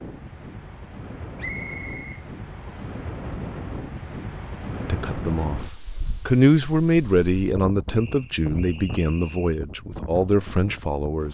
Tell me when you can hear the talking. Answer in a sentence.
The talking can be heard from 4.8 to 11.2 s.